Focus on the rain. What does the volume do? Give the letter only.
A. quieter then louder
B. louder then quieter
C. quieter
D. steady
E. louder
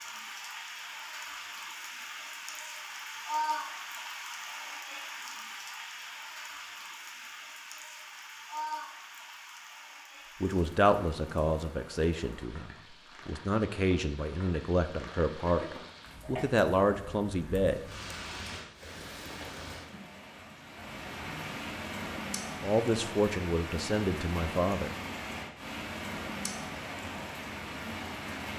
A.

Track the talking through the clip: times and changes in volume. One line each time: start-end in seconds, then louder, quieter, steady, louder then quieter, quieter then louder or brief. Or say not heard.
10.4-17.8 quieter then louder
22.6-24.9 brief.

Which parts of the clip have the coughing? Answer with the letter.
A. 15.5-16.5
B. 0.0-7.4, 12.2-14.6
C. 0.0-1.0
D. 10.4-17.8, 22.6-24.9
A.